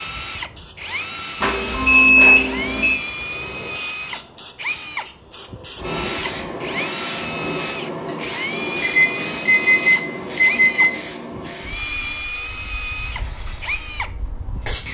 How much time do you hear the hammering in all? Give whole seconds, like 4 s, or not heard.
not heard.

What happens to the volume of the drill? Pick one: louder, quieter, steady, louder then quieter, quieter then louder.
steady.